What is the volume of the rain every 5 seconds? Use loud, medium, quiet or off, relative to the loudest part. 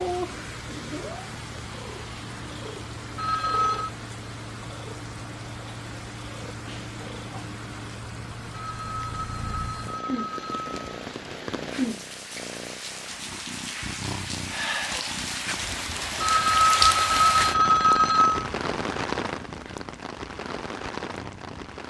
medium, medium, medium, loud, medium.